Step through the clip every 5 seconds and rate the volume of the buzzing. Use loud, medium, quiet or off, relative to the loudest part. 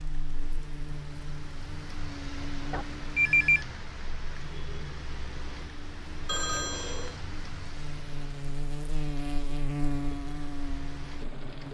medium, loud, loud.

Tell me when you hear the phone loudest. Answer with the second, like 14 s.
3 s.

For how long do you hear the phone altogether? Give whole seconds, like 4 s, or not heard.
2 s.